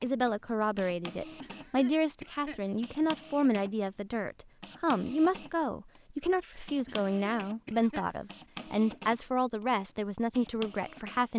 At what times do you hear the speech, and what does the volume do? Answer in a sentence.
You can hear the speech from 0.0 to 11.3 s, at a steady volume.